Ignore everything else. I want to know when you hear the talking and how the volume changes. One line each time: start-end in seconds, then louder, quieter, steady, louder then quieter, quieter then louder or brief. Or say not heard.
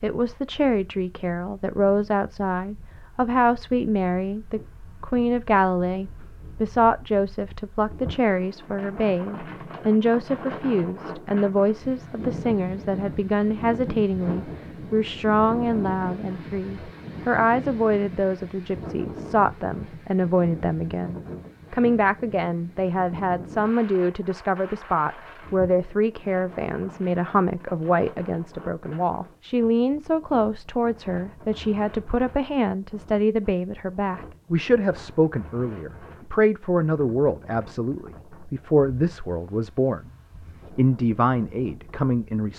0.0-40.0 steady
40.8-42.5 brief.